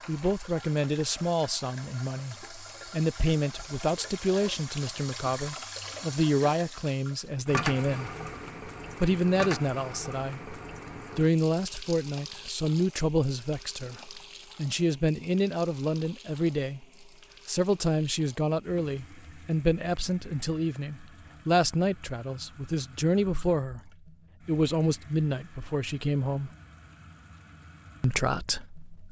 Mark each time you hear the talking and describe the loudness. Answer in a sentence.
You can hear the talking from 0.1 to 8.1 s, at a steady volume; briefly from 9.0 to 10.6 s; from 11.2 to 26.5 s, at a steady volume; and briefly from 28.0 to 29.0 s.